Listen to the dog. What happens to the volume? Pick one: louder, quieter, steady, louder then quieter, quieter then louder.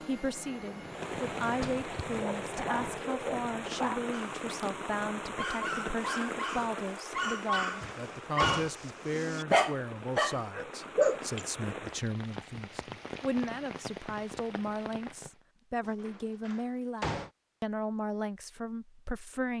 louder.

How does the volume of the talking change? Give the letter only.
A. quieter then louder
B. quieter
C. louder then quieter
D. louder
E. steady
E.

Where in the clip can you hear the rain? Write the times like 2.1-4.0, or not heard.
0.1-15.3.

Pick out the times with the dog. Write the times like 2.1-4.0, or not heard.
2.1-11.4.